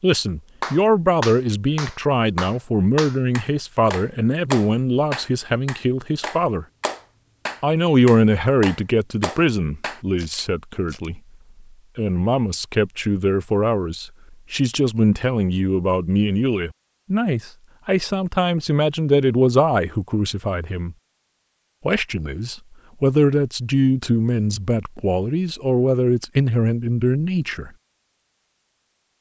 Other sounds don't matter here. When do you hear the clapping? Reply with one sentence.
The clapping can be heard from 0.6 to 10.0 s.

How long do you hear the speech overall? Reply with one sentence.
The speech can be heard for 25 seconds in total.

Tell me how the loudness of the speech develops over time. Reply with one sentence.
The loudness of the speech stays about the same.